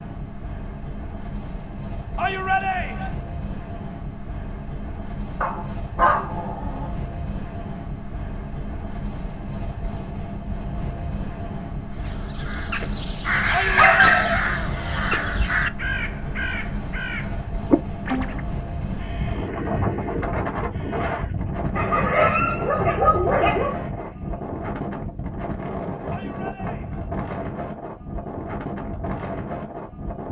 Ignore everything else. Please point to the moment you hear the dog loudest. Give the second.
14 s.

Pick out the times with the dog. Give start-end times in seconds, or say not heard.
5.4-6.9, 13.8-15.1, 21.8-23.8.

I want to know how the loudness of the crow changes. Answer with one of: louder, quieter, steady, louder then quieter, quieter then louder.
quieter.